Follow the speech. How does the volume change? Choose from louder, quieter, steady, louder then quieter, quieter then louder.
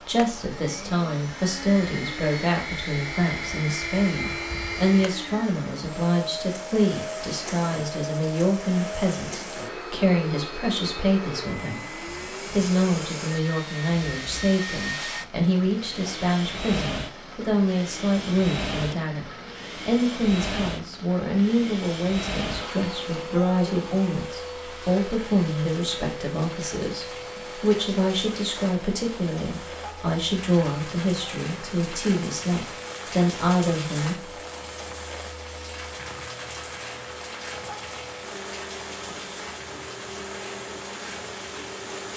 steady.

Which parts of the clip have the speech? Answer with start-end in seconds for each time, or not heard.
0.0-34.4.